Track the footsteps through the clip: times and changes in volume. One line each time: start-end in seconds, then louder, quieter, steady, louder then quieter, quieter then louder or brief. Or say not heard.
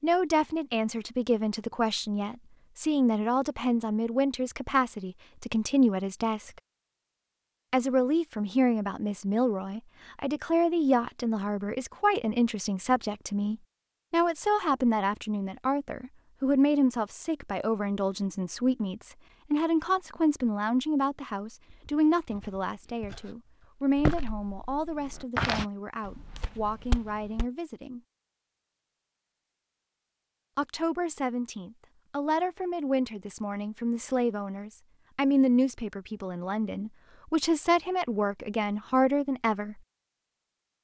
21.6-27.4 louder then quieter.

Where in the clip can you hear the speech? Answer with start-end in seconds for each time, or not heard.
0.0-6.5, 7.7-28.0, 30.6-39.8.